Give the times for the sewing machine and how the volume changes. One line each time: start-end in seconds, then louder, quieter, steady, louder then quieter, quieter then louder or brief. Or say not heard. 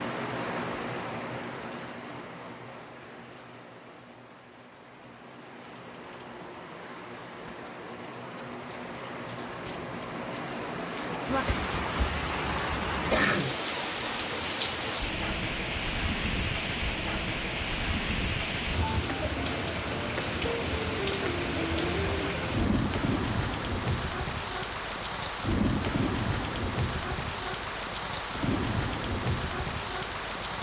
not heard.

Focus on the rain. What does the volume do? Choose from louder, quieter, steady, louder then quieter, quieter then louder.
louder.